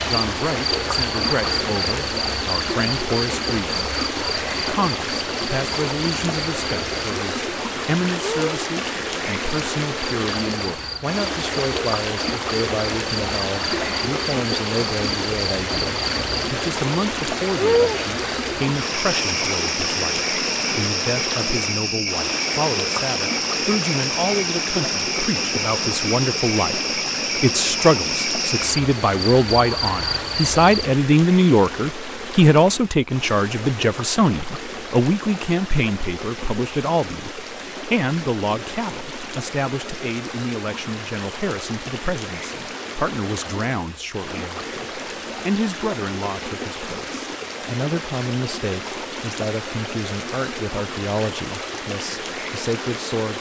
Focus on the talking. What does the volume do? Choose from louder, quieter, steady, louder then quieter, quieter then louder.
louder then quieter.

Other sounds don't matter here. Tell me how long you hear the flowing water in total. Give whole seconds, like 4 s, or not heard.
53 s.